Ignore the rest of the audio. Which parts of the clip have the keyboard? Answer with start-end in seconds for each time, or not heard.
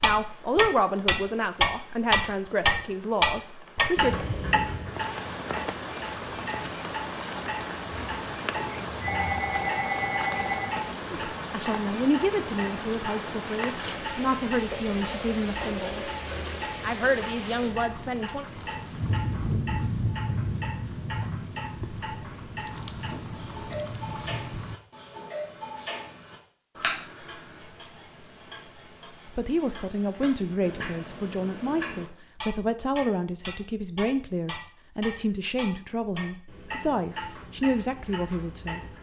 not heard.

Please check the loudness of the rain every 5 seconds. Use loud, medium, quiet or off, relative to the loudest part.
quiet, loud, loud, loud, loud, off, off, off.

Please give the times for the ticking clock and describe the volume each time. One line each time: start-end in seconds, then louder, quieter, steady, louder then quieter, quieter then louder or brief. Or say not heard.
0.0-38.9 quieter.